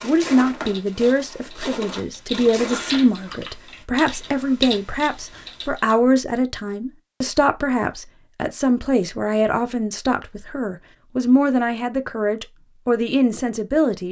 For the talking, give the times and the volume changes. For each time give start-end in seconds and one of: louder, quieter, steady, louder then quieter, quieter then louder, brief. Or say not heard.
0.0-14.0 steady.